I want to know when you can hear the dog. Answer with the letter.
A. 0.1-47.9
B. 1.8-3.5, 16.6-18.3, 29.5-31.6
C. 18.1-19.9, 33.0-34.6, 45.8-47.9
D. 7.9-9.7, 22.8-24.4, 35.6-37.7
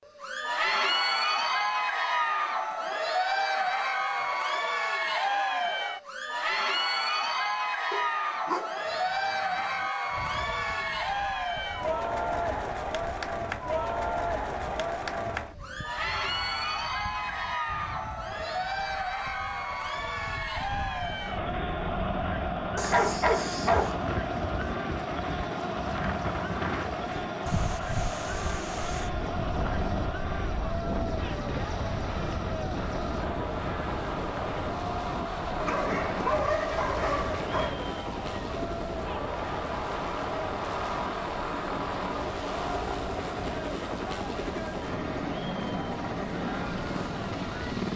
D.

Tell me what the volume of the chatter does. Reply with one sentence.
The loudness of the chatter goes down.